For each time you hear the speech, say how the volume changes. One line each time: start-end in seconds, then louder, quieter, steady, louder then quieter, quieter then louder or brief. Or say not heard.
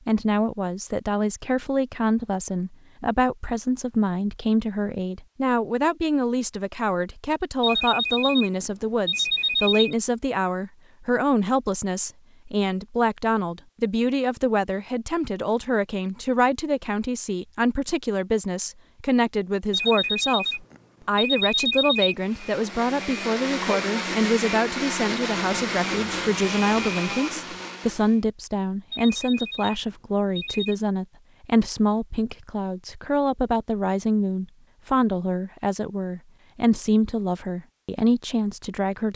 0.1-39.1 steady.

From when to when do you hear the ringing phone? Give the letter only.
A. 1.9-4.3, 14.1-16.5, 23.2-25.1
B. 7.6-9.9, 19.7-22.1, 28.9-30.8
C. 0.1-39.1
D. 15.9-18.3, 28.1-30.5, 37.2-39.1
B.